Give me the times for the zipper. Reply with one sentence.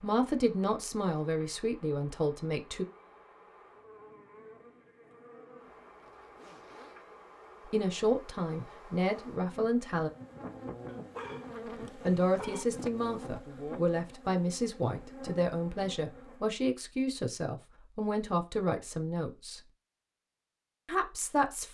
You can hear the zipper from 6.0 to 7.0 s.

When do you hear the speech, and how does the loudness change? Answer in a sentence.
You can hear the speech briefly from 0.0 to 2.9 s; briefly from 7.7 to 10.1 s; from 11.9 to 19.6 s, at a steady volume; and briefly from 20.9 to 21.6 s.